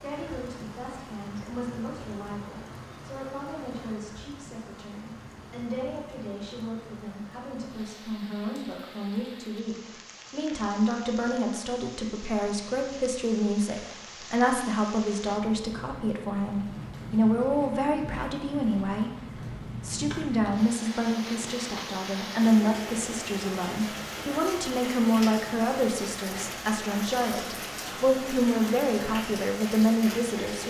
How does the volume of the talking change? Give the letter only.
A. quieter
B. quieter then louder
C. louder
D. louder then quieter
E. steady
C.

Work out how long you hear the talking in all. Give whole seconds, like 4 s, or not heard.
30 s.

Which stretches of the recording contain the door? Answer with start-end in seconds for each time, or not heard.
not heard.